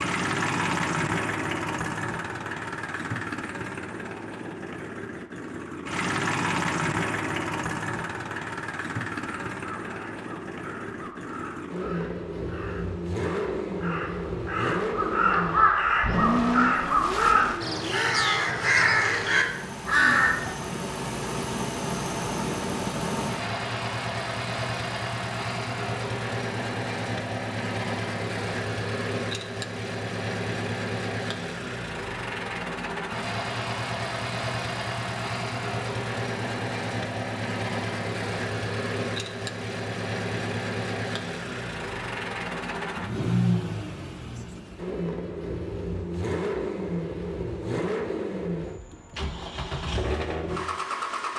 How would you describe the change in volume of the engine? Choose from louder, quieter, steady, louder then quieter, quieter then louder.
steady.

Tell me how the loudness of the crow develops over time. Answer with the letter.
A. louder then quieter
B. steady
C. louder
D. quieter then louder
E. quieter
C.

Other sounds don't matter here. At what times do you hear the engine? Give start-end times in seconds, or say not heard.
0.0-51.3.